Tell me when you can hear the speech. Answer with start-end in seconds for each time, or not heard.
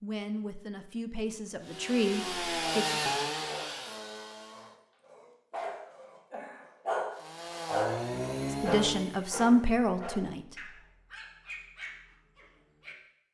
0.0-3.0, 8.5-10.4.